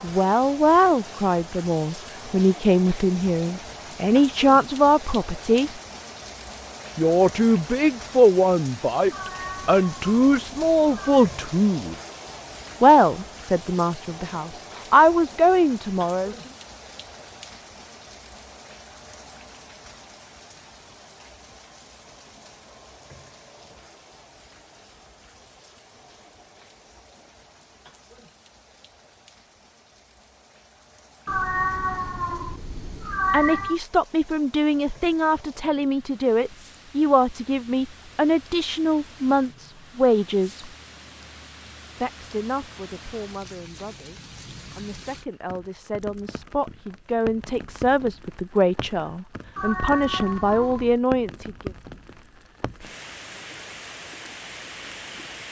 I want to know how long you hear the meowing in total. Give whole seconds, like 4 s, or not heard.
6 s.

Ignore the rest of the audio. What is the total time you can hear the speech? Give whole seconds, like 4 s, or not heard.
31 s.